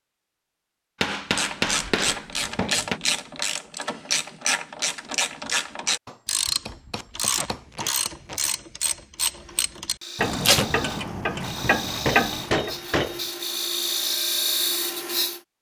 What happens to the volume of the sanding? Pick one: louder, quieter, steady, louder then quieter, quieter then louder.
louder.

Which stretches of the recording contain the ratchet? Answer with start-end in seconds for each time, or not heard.
1.1-12.8.